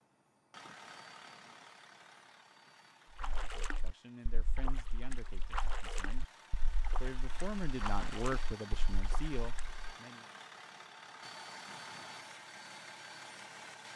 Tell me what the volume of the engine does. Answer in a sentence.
The loudness of the engine goes down, then up.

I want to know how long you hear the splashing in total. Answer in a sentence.
The splashing can be heard for 7 seconds in total.